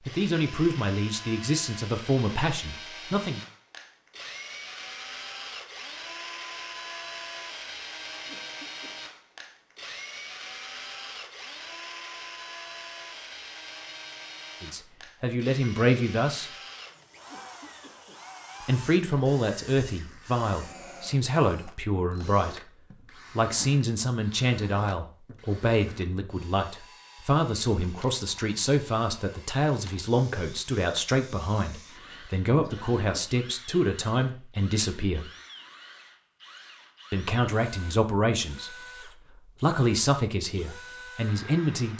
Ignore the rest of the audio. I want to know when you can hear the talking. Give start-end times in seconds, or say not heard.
0.0-3.4, 14.6-16.6, 18.6-35.3, 37.1-41.9.